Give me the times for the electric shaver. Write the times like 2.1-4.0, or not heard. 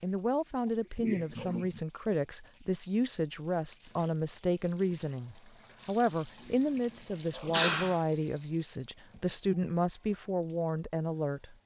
not heard.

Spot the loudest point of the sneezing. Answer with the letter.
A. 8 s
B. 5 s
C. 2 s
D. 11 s
A.